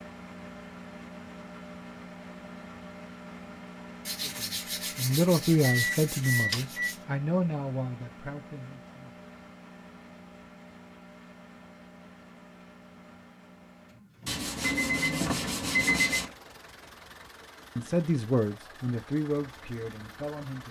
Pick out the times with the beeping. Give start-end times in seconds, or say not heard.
5.6-6.9, 14.6-16.2.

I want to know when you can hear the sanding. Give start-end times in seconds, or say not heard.
4.0-7.0, 14.2-16.2.